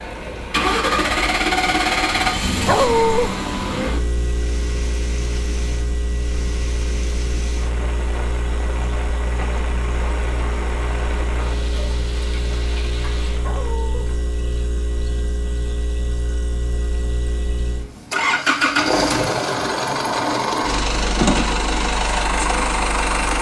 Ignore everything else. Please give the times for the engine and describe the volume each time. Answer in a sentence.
You can hear the engine from 0.0 to 23.3 s, getting quieter then louder.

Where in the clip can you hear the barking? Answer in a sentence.
You can hear the barking from 2.6 to 3.3 s and from 13.4 to 14.1 s.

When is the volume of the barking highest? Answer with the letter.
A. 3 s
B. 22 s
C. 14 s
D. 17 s
A.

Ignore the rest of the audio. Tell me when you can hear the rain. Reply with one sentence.
You can hear the rain from 0.0 to 14.2 s.